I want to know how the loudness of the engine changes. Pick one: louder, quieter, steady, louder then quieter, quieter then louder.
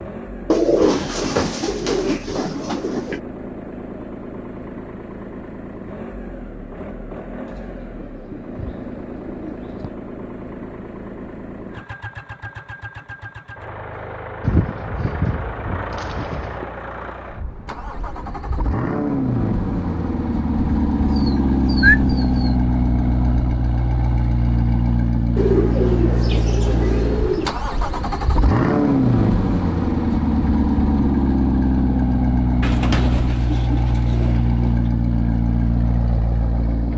louder.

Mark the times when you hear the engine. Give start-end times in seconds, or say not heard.
0.0-36.9.